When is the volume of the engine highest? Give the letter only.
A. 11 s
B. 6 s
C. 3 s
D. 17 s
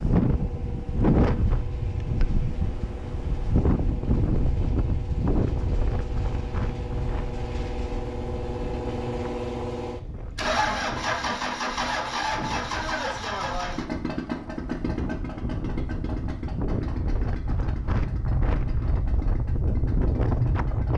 A.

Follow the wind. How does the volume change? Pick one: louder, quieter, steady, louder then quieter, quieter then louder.
quieter then louder.